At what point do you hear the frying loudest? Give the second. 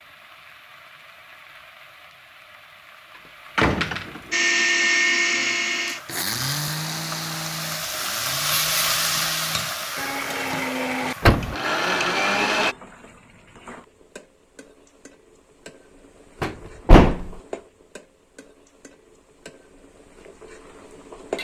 9 s.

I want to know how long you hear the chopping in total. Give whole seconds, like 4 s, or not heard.
not heard.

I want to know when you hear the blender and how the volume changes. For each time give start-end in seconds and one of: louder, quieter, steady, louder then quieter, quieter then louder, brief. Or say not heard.
4.3-12.8 quieter then louder.